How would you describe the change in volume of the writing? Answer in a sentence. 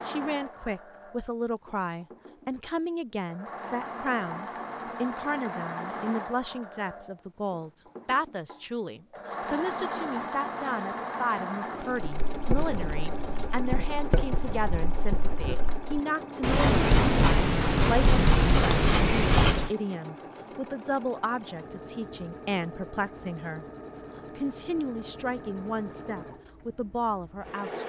The volume of the writing goes up.